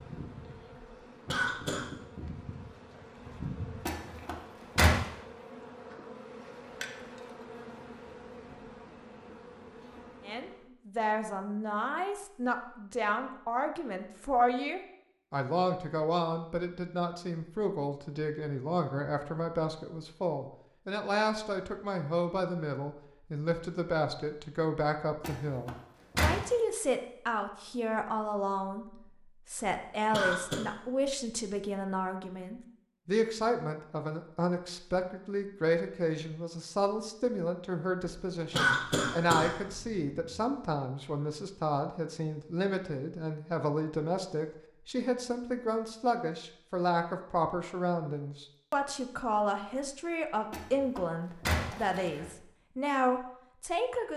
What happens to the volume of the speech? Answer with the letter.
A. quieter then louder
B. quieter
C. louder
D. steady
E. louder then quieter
D.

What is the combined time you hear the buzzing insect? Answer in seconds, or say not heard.
11 s.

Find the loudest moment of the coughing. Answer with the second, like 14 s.
39 s.